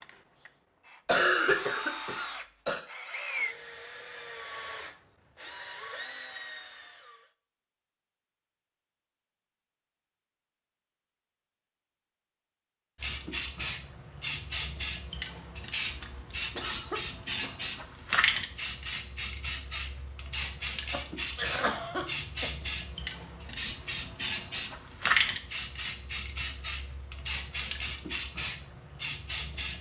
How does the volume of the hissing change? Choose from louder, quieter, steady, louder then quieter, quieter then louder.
steady.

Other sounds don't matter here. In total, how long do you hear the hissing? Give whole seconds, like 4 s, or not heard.
17 s.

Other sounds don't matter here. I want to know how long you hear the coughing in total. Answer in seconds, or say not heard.
4 s.